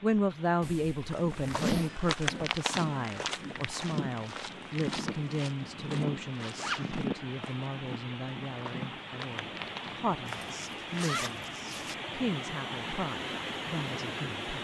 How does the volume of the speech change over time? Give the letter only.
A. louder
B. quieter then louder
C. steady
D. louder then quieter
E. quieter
E.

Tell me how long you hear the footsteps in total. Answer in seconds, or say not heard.
9 s.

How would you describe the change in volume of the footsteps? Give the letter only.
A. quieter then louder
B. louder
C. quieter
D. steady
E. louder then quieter
C.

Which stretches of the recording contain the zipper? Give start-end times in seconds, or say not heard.
0.6-1.9, 6.5-7.0, 10.2-11.9.